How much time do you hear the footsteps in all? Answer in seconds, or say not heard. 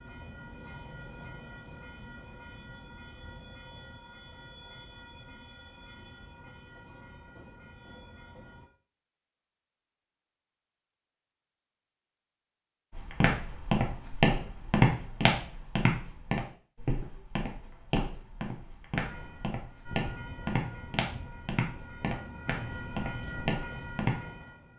11 s.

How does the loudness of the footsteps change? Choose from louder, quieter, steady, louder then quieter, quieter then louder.
quieter.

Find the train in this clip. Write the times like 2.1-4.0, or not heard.
0.0-8.7, 19.0-24.7.